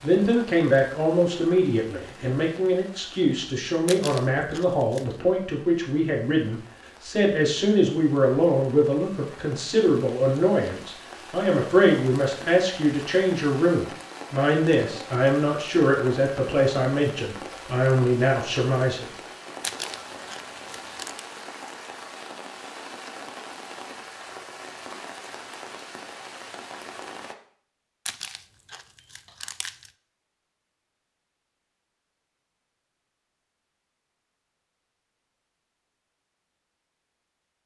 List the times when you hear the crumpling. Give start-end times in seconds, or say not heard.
3.9-5.2, 19.6-21.2, 28.1-29.9.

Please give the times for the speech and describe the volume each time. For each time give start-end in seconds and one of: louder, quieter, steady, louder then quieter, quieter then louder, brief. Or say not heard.
0.0-19.1 steady.